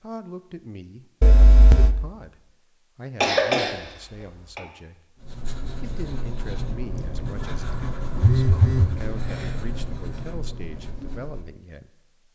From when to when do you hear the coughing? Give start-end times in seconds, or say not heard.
3.2-4.6.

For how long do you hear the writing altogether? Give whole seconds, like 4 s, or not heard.
6 s.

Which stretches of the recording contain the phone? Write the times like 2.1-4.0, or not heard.
1.2-1.9, 8.2-8.9.